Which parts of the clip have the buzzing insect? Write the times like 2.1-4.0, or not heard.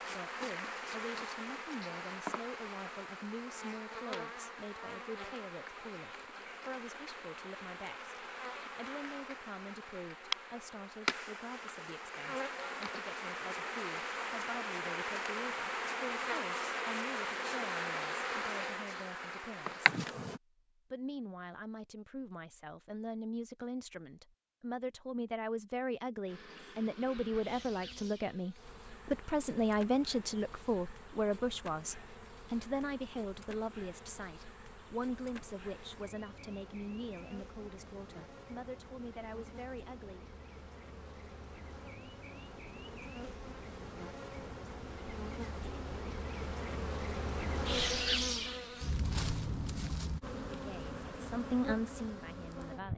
0.0-20.4, 26.2-52.9.